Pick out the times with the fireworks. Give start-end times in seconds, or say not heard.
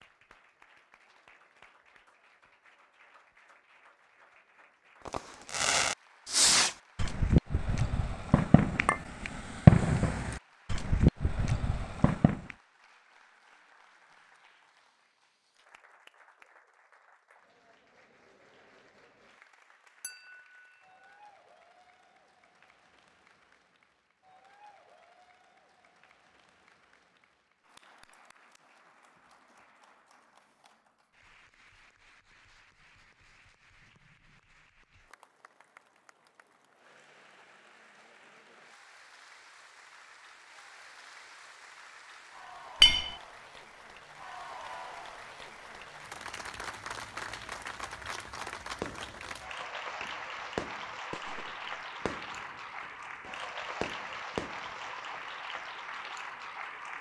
5.0-12.4, 48.8-55.6.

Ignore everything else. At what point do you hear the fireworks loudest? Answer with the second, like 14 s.
10 s.